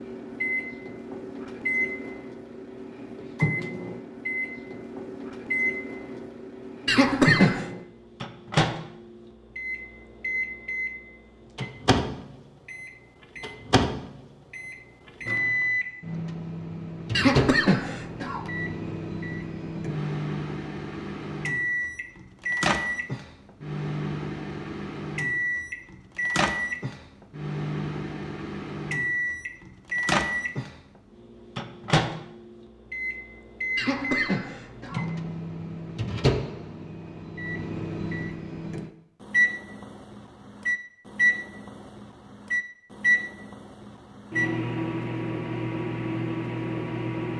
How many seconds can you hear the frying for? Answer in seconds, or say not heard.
not heard.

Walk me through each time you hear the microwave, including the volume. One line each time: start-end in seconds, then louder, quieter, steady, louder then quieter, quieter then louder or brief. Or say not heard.
0.0-47.3 steady.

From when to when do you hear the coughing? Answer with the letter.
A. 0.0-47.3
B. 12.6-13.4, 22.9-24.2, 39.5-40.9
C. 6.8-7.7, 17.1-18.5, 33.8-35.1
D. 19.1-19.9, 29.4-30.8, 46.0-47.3
C.